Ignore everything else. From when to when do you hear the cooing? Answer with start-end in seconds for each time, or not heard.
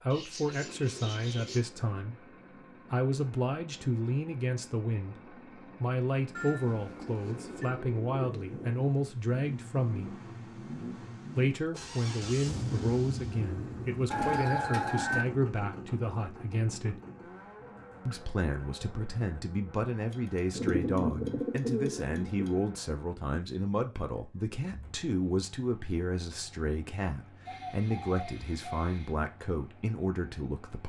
0.1-1.6, 7.2-8.8, 14.1-15.2, 20.1-22.6, 27.4-29.1.